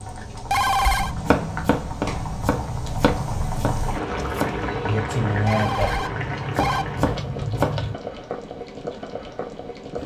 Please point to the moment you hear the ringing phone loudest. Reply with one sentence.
The volume of the ringing phone peaks at 1 second.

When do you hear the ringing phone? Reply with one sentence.
You can hear the ringing phone from 0.2 to 1.1 s and from 5.3 to 6.8 s.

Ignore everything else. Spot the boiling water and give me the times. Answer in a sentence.
The boiling water can be heard from 0.0 to 10.0 s.